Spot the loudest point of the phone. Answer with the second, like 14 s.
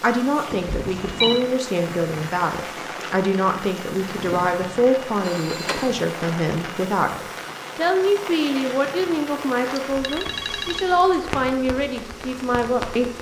1 s.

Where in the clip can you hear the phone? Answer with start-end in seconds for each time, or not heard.
0.8-1.4, 5.2-5.9, 10.0-11.0.